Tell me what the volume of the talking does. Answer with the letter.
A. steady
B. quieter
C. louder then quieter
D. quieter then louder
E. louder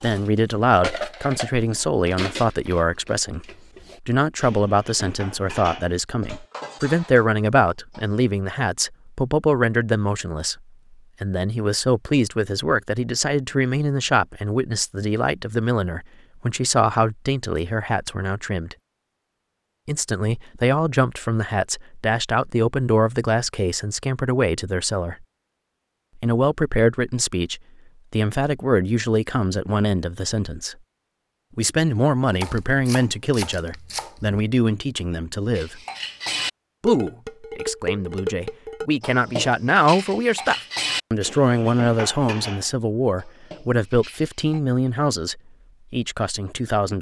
A.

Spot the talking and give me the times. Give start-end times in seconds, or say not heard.
0.0-10.6, 11.2-18.8, 19.9-25.2, 26.1-30.8, 31.6-35.8, 36.8-46.9.